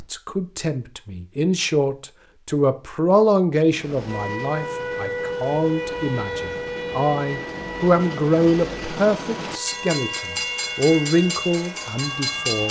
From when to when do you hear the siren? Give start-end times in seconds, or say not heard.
4.0-12.6.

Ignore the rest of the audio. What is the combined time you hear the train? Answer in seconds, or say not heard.
9 s.